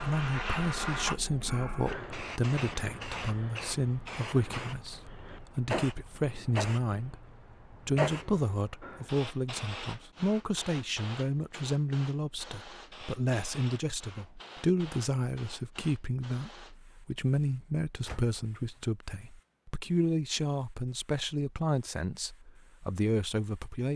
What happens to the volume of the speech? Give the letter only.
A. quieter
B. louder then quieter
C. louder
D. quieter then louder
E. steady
E.